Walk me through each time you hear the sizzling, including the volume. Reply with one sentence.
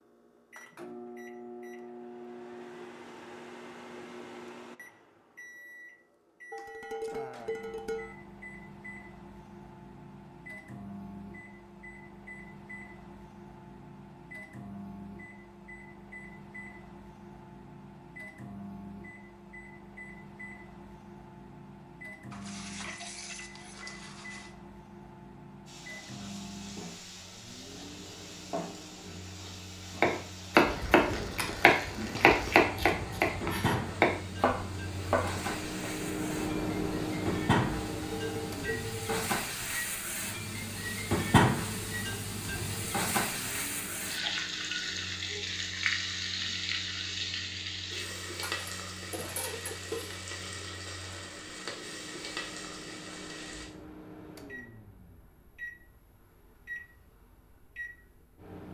You can hear the sizzling from 25.6 to 53.7 s, getting louder then quieter.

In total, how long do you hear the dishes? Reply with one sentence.
You can hear the dishes for 7 seconds altogether.